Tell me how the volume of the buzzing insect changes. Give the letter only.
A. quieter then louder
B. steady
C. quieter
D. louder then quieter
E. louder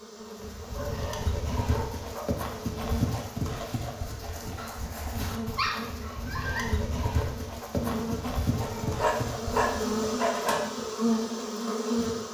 E.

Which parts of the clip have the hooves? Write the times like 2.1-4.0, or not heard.
0.3-9.8.